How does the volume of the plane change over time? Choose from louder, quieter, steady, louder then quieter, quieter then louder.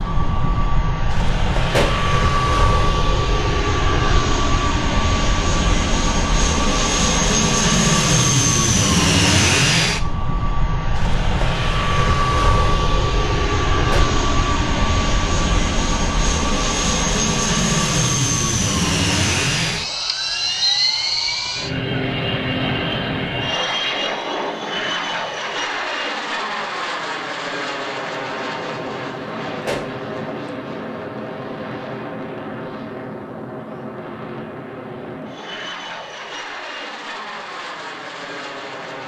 quieter.